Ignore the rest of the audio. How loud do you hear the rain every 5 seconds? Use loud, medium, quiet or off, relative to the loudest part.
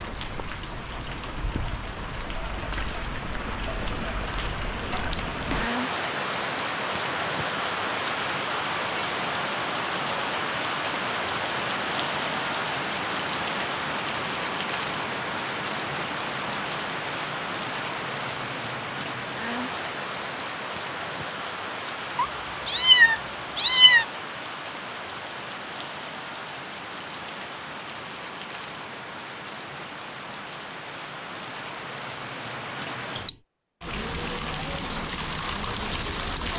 medium, loud, loud, loud, medium, medium, medium, loud.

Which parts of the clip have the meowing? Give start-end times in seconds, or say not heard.
22.1-24.1.